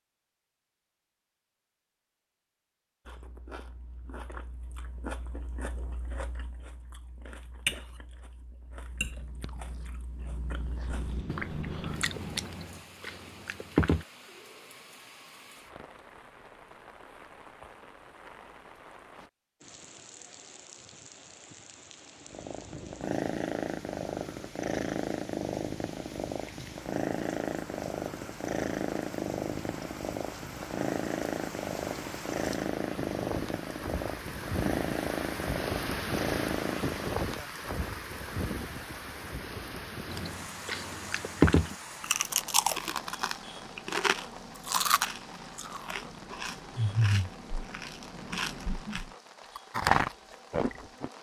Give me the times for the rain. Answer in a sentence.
You can hear the rain from 10.8 to 51.1 s.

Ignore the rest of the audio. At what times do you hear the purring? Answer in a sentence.
You can hear the purring from 8.8 to 12.6 s and from 22.2 to 37.2 s.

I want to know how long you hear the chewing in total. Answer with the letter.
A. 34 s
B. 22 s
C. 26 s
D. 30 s
B.